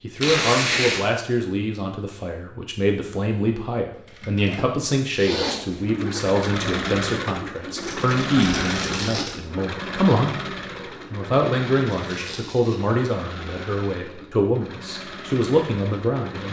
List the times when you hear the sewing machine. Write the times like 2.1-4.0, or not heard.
3.9-16.4.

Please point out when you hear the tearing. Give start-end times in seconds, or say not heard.
0.2-1.0, 7.8-9.4, 11.9-13.1.